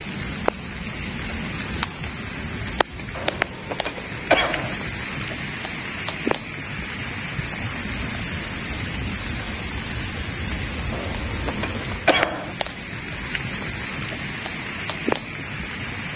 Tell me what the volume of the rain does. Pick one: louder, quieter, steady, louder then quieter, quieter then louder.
steady.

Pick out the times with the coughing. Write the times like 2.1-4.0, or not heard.
3.1-4.8, 10.9-12.6.